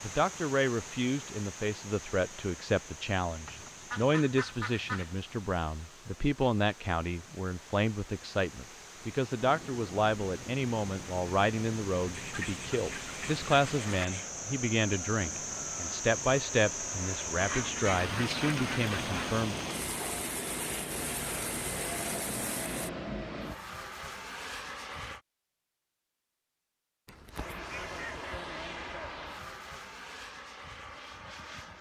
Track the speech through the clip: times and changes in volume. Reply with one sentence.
The speech can be heard from 0.0 to 19.6 s, at a steady volume.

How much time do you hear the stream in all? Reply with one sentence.
You can hear the stream for 23 seconds altogether.